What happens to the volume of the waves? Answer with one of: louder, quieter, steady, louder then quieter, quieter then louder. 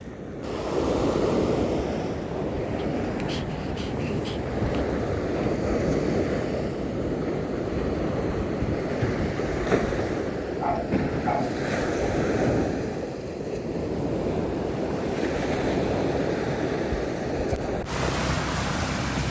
steady.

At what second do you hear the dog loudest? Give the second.
11 s.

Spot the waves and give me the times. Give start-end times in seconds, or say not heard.
0.0-19.2.